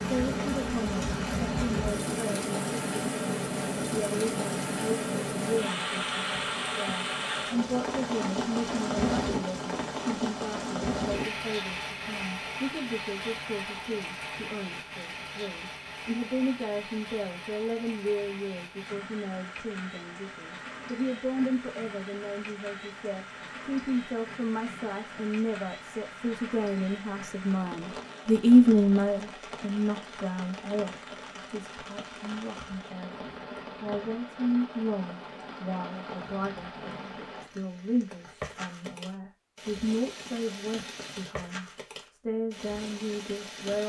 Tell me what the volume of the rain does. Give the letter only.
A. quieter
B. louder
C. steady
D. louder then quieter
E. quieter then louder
A.